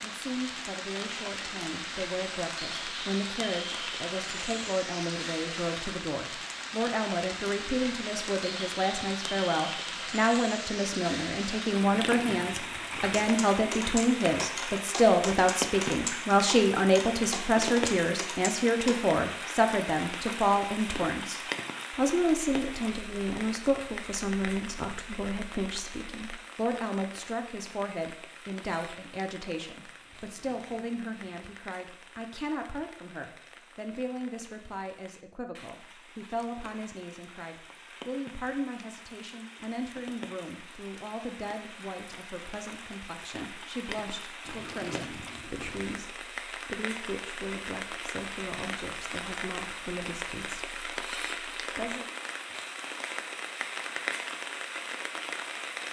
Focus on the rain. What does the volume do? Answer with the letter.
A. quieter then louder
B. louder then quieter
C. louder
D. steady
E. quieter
A.